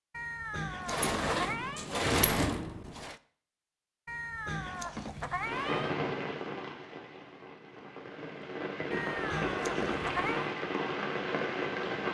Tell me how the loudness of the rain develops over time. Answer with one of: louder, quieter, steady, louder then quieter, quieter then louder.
quieter then louder.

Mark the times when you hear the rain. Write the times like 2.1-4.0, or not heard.
5.3-12.0.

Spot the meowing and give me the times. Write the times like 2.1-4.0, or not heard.
0.1-1.9, 4.0-6.0, 8.9-10.6.